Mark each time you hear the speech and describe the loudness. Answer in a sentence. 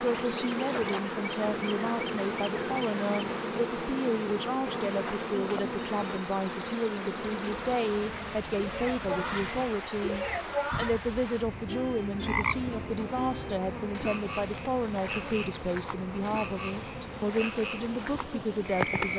You can hear the speech from 0.0 to 19.1 s, at a steady volume.